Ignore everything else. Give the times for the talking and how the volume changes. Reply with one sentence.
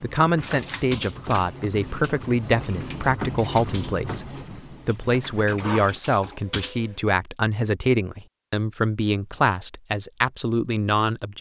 You can hear the talking from 0.0 to 11.3 s, at a steady volume.